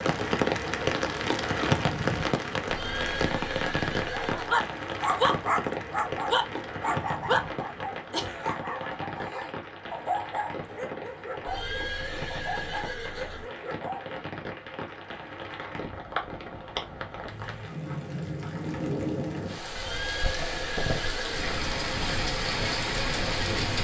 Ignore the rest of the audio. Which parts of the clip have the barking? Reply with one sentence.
The barking can be heard from 4.0 to 14.2 s.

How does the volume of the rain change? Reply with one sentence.
The loudness of the rain goes down, then up.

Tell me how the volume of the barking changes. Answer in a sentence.
The loudness of the barking goes down.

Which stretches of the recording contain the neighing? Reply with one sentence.
The neighing can be heard from 2.6 to 4.5 s, from 11.4 to 13.4 s and from 19.8 to 21.5 s.